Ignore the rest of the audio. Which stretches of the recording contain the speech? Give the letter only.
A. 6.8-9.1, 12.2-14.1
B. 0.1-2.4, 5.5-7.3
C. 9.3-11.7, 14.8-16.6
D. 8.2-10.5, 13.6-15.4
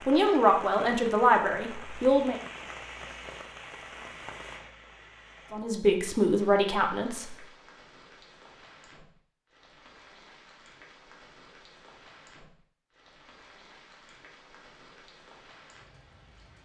B.